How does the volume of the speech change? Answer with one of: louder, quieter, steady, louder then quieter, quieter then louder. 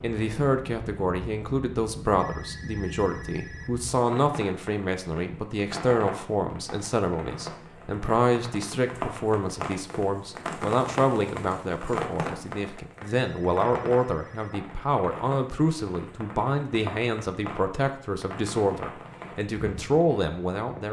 steady.